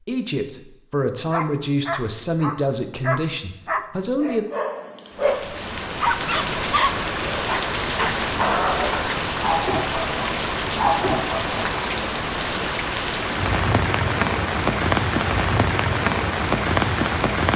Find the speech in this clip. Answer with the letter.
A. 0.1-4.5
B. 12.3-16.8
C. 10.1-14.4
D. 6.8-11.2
A.